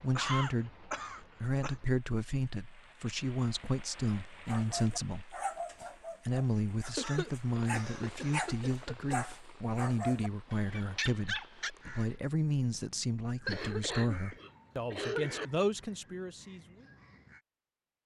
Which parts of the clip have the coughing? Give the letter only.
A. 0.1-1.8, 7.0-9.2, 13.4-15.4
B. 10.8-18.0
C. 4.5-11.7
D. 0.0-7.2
A.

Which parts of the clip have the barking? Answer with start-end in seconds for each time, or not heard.
4.5-11.7.